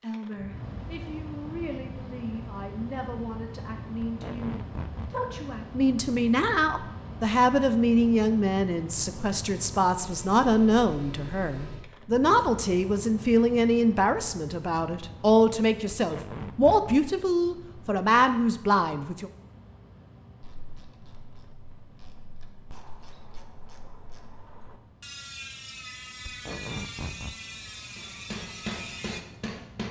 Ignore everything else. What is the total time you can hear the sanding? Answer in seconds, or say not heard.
not heard.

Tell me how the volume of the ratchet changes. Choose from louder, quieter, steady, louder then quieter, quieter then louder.
louder.